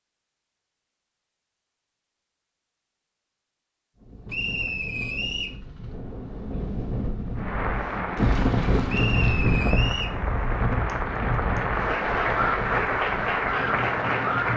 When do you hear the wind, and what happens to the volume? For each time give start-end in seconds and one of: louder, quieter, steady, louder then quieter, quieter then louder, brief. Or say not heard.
4.0-14.5 louder then quieter.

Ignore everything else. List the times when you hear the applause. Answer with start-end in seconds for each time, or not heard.
7.3-14.5.